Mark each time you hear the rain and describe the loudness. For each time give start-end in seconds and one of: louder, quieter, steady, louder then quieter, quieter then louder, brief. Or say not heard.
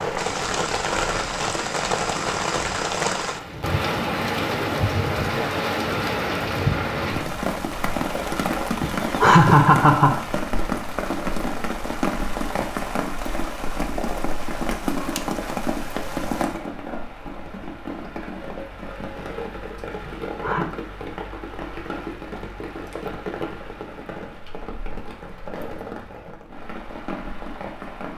0.0-28.1 quieter.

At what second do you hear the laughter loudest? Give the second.
9 s.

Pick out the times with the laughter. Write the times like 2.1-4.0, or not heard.
8.8-10.2, 20.1-20.6.